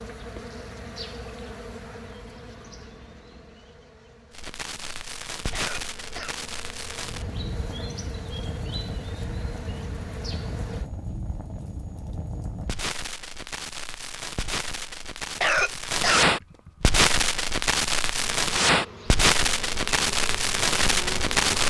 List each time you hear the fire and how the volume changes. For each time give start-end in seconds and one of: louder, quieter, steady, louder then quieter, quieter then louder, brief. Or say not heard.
4.3-21.6 louder.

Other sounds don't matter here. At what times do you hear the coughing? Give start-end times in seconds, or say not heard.
5.5-6.3, 15.4-16.9.